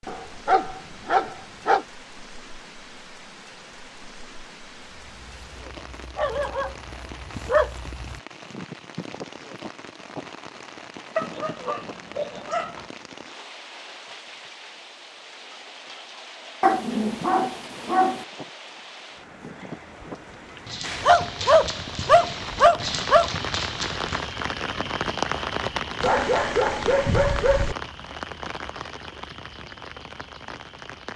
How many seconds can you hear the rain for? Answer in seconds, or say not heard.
31 s.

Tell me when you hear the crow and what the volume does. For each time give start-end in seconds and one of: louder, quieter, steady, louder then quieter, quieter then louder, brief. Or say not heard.
not heard.